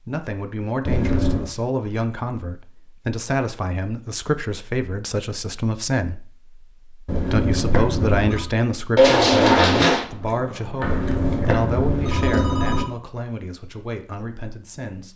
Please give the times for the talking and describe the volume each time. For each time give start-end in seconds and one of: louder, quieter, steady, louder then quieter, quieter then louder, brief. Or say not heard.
0.0-6.3 steady
7.1-15.1 quieter.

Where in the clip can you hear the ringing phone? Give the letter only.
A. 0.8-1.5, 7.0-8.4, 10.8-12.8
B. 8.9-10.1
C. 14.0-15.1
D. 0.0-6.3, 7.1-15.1
A.